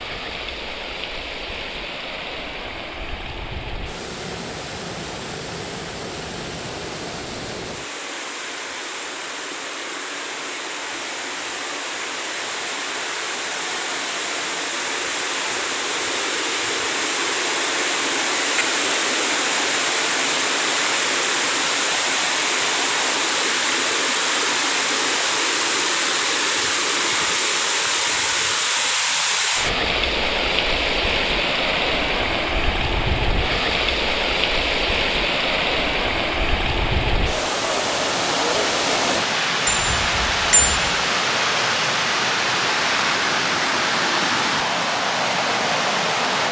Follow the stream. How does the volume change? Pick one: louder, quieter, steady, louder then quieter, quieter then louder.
louder.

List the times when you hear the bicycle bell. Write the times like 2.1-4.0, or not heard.
39.6-41.0.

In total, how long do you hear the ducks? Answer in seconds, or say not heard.
not heard.